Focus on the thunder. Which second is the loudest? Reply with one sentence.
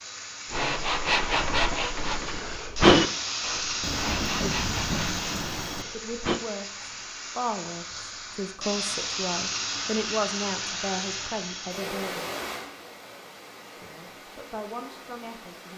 The loudest moment of the thunder is at 4 seconds.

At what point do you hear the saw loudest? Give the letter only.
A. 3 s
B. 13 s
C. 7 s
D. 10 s
A.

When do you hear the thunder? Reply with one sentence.
You can hear the thunder from 3.8 to 5.8 s.